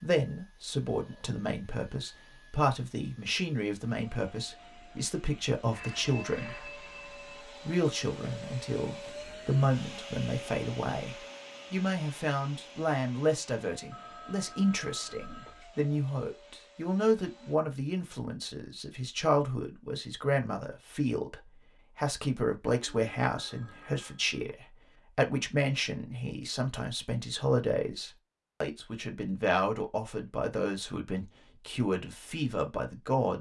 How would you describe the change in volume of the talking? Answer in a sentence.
The loudness of the talking stays about the same.